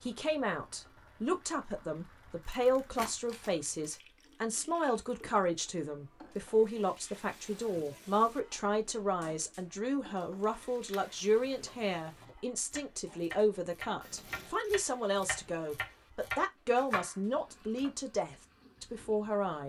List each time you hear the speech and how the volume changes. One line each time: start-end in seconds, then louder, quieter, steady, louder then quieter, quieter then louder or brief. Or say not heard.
0.0-19.6 steady.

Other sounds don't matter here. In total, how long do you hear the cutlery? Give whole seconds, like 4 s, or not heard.
not heard.